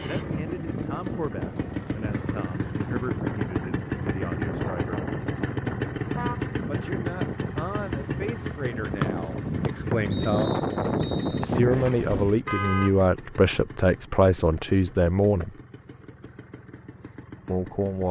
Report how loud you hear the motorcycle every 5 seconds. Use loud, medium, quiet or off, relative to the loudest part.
loud, loud, medium, quiet.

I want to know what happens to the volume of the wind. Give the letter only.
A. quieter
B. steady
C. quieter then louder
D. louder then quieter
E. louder
E.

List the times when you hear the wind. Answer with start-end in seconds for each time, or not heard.
0.0-12.4.